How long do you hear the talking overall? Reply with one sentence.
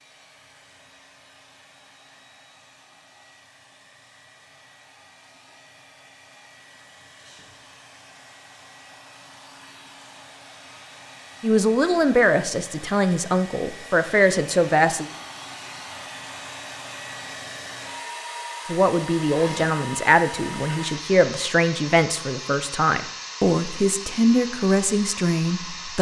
You can hear the talking for 11 seconds altogether.